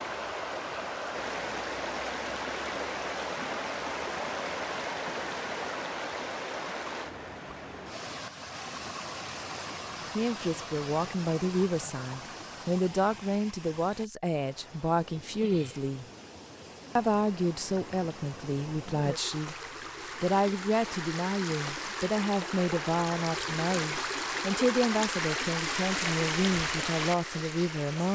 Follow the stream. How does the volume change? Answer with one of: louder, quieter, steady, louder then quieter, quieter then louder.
quieter then louder.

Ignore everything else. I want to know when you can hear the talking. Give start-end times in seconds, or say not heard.
10.2-16.1, 16.9-19.6, 20.2-28.0.